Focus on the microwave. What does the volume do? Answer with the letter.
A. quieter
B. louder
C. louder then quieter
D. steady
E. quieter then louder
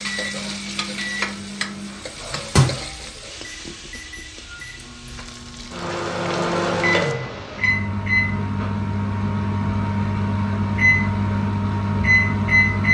E.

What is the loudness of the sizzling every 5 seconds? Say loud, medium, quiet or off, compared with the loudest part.
loud, medium, off.